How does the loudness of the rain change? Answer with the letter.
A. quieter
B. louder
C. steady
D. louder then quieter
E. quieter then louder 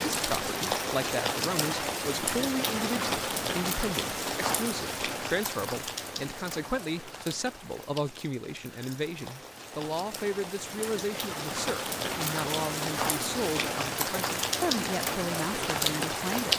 E.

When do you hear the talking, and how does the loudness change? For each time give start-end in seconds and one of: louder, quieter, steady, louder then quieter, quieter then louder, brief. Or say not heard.
0.1-16.5 steady.